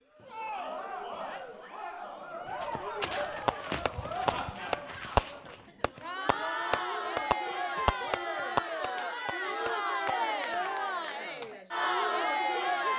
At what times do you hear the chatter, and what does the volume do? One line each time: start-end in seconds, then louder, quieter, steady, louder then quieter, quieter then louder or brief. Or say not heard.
0.1-12.9 louder.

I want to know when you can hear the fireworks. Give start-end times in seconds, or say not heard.
3.0-10.6.